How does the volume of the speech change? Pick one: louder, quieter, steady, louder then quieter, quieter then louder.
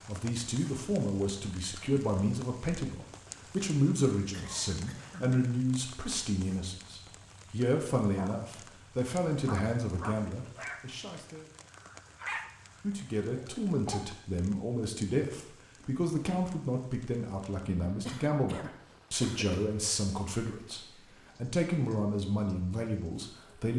steady.